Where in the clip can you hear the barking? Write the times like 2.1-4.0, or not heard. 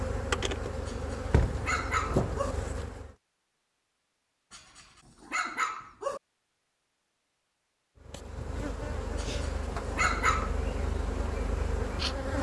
0.8-2.5, 4.5-6.2, 9.2-10.6.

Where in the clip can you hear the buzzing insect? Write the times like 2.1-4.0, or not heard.
0.0-3.1, 8.0-12.3.